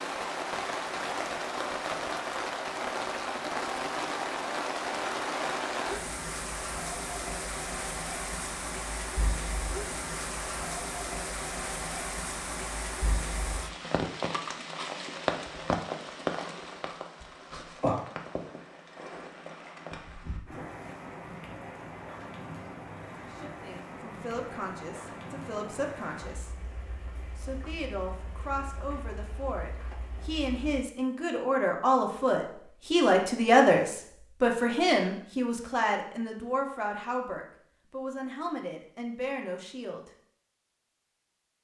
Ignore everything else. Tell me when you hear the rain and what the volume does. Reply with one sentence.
You can hear the rain from 0.0 to 30.9 s, getting quieter.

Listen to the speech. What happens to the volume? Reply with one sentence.
The volume of the speech goes up, then down.